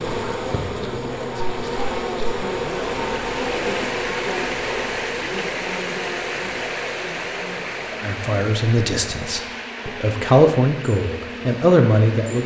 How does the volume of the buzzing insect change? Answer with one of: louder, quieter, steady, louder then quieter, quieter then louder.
quieter.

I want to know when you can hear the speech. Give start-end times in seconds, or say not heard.
8.0-12.4.